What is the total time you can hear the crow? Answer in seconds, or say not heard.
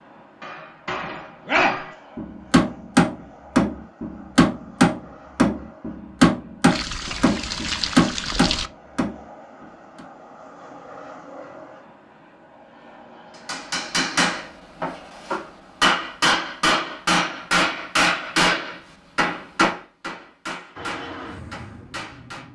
not heard.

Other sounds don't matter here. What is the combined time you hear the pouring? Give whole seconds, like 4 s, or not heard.
2 s.